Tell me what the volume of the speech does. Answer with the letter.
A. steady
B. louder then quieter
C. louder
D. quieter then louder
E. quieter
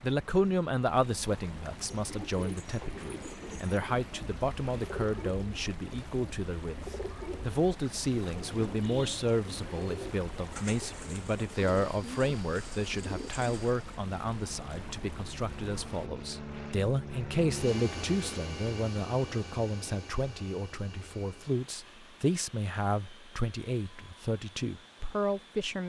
A.